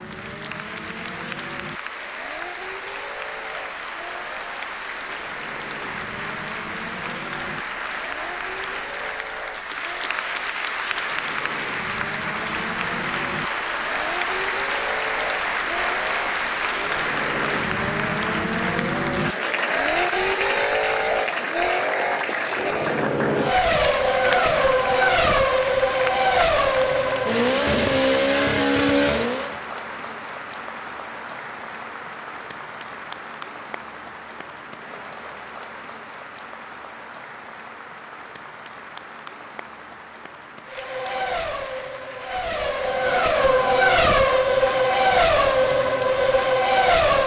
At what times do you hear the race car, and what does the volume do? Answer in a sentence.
The race car can be heard from 0.0 to 29.6 s, getting louder; and from 40.7 to 47.2 s, getting louder.